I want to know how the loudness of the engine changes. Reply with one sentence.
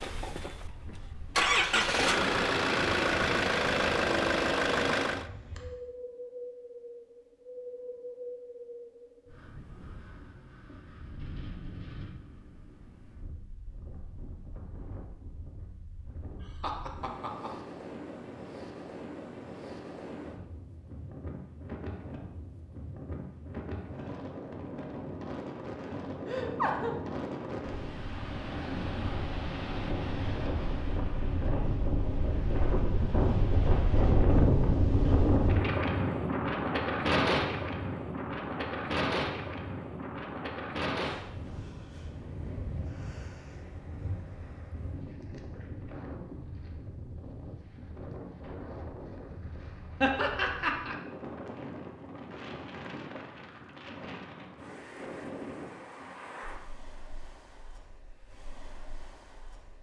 The volume of the engine goes up.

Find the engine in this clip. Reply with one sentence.
You can hear the engine from 0.0 to 5.3 s.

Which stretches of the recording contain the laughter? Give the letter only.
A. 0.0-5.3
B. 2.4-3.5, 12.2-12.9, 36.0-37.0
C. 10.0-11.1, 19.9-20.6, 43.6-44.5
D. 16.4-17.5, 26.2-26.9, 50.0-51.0
D.